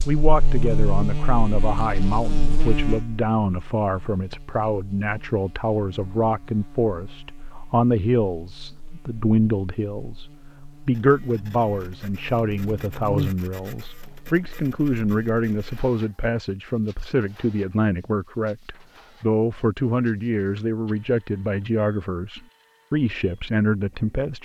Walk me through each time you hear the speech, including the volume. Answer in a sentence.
You can hear the speech from 0.1 to 24.4 s, at a steady volume.